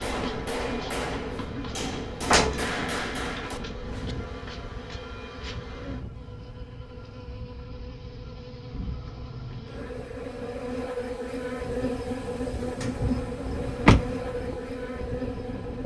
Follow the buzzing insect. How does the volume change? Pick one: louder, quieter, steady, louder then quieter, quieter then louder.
louder.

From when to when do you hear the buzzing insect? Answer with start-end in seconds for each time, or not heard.
0.1-15.8.